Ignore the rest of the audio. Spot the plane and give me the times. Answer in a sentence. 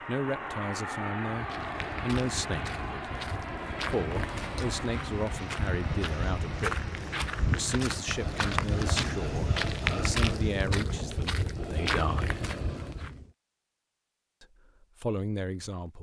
You can hear the plane from 0.0 to 10.6 s.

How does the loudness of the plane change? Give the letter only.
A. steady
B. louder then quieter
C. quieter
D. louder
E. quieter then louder
C.